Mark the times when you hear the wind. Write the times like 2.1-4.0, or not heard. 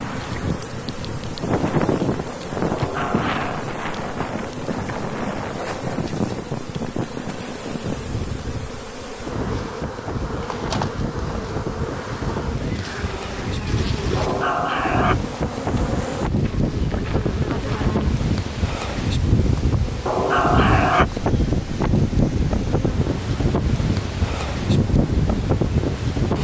0.0-26.3.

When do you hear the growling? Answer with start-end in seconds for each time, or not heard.
2.6-3.6, 14.2-15.2, 20.1-21.1.